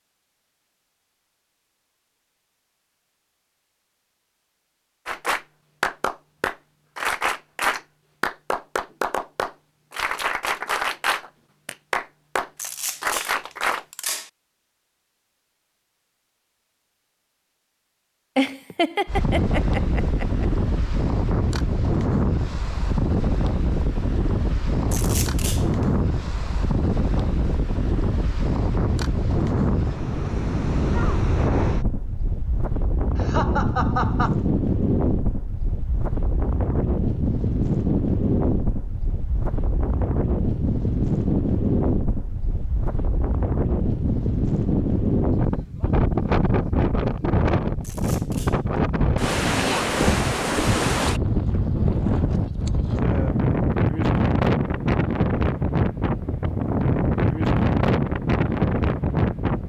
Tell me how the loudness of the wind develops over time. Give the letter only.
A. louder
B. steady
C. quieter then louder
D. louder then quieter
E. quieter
B.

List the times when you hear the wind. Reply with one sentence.
You can hear the wind from 19.1 to 59.6 s.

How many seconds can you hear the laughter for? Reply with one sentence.
You can hear the laughter for 3 seconds altogether.